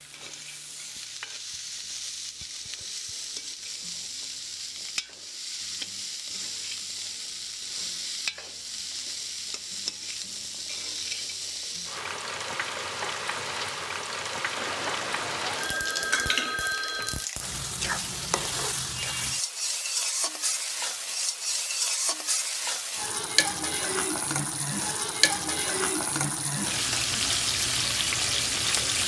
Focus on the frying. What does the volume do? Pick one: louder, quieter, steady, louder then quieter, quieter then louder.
louder.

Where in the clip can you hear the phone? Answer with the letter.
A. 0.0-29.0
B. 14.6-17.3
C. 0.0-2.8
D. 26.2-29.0
B.